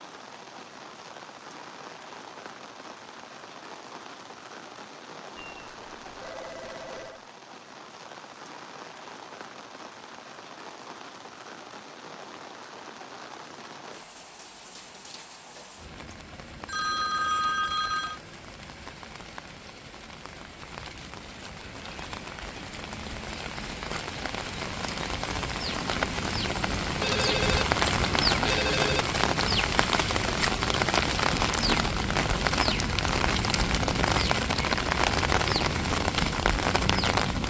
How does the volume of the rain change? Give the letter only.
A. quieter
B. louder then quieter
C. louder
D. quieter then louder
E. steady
C.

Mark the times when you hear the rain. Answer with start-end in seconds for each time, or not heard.
0.0-37.4.